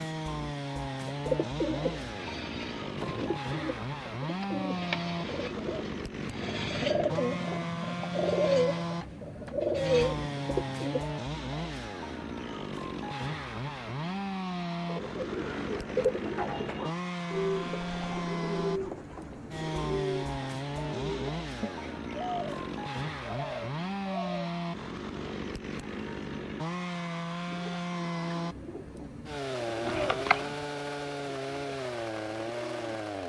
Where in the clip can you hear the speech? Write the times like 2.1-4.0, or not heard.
not heard.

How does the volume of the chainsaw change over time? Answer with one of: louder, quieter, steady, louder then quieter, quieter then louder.
steady.